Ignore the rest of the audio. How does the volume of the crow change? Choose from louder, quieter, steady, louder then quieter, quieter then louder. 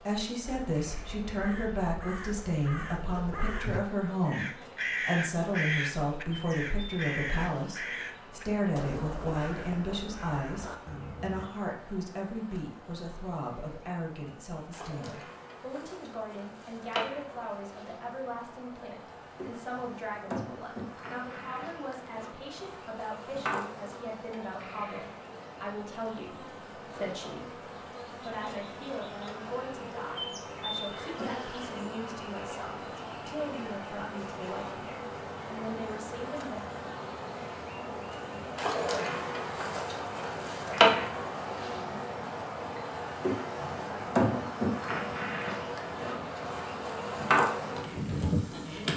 louder then quieter.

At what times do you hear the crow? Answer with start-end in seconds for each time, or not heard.
0.5-11.5.